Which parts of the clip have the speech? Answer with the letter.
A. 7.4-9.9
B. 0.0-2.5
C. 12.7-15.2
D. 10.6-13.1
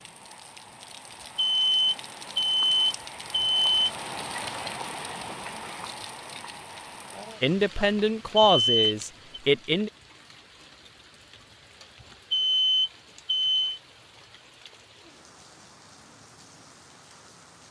A.